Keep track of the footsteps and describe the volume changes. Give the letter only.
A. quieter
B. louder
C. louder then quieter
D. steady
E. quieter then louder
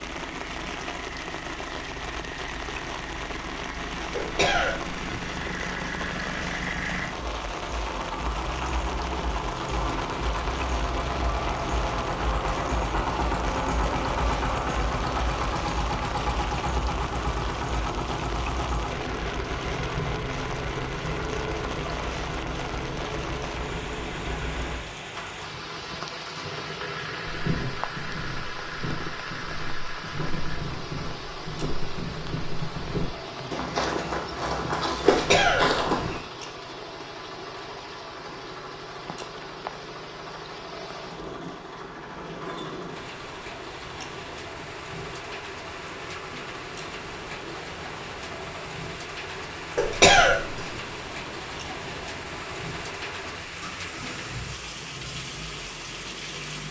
B.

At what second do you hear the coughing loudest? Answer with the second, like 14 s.
50 s.